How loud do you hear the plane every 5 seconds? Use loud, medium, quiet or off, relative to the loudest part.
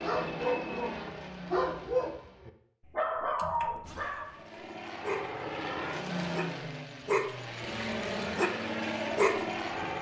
medium, loud.